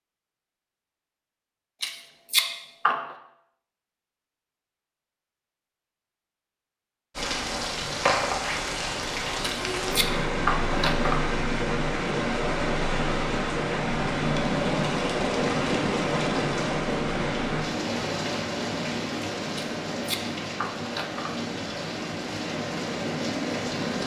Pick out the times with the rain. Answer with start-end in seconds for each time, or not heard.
7.2-24.0.